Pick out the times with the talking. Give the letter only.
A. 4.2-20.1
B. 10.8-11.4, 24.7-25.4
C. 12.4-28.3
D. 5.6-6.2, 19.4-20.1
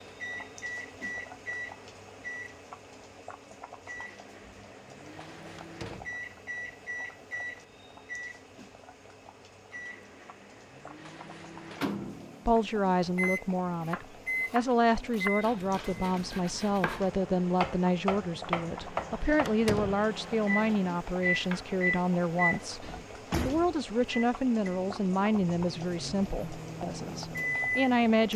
C.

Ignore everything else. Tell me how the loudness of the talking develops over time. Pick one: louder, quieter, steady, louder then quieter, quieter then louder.
steady.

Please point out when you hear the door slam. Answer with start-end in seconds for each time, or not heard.
5.6-6.2, 19.4-20.1.